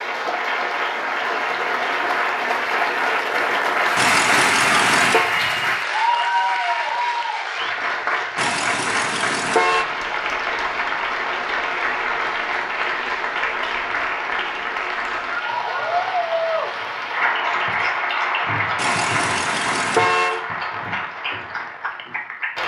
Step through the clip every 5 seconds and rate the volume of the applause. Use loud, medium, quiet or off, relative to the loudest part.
loud, loud, loud, loud, medium.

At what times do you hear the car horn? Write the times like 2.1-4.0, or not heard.
4.0-5.3, 8.3-9.8, 18.8-20.4.